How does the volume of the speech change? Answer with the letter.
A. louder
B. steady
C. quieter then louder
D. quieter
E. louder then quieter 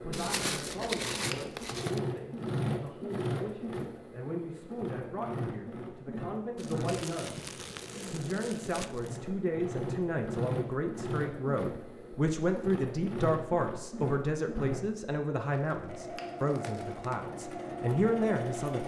A.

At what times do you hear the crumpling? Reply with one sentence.
The crumpling can be heard from 0.1 to 2.0 s, from 6.5 to 9.2 s and from 15.5 to 17.2 s.